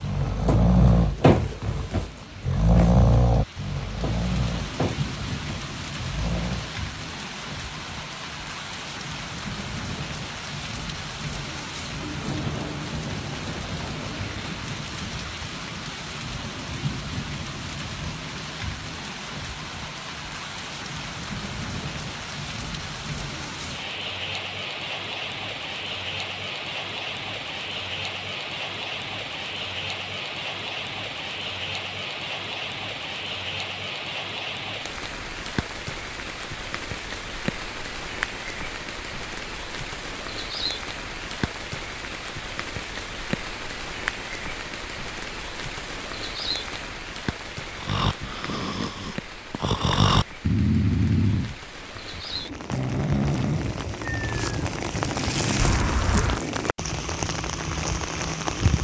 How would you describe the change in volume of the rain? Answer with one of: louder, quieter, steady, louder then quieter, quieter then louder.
steady.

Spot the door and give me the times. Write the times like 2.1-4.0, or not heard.
55.5-56.4.